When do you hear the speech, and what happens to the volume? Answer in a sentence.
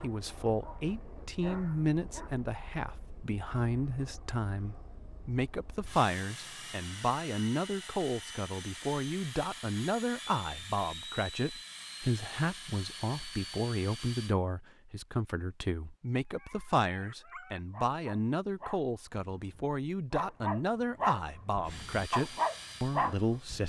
You can hear the speech from 0.0 to 23.6 s, at a steady volume.